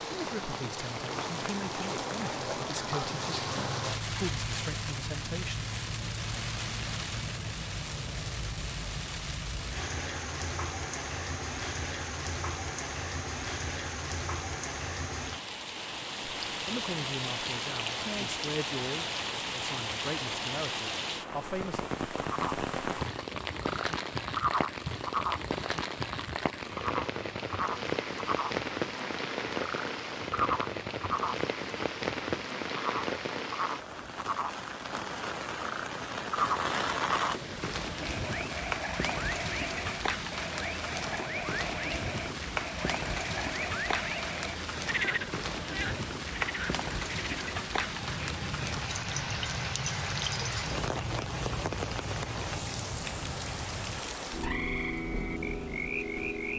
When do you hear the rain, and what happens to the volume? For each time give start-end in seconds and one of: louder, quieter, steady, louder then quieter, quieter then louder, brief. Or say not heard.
0.0-56.5 steady.